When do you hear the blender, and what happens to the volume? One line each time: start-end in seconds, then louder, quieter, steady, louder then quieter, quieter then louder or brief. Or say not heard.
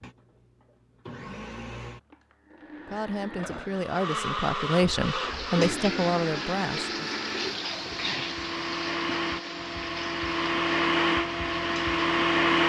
0.0-12.6 louder.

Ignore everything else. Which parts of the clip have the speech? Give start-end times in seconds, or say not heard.
2.9-7.2.